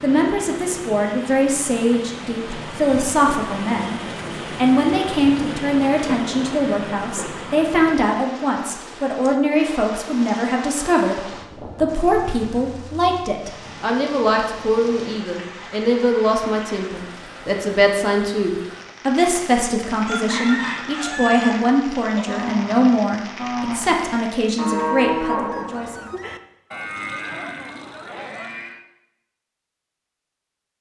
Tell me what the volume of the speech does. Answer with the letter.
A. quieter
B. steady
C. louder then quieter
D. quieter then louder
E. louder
B.